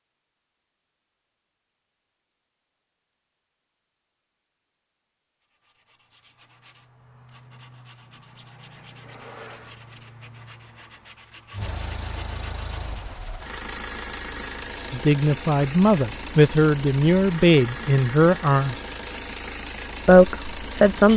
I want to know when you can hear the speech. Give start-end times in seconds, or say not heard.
14.9-18.8, 20.1-21.1.